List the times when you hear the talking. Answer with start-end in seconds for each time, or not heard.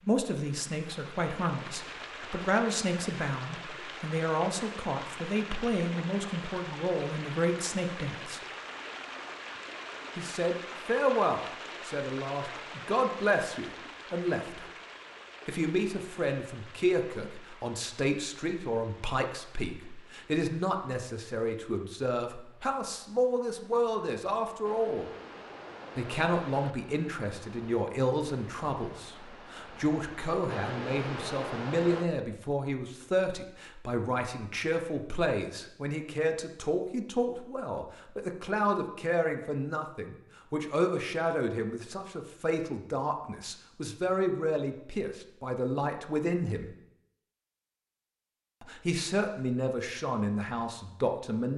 0.1-8.4, 10.2-14.7, 15.4-25.1, 25.9-46.6, 48.6-51.5.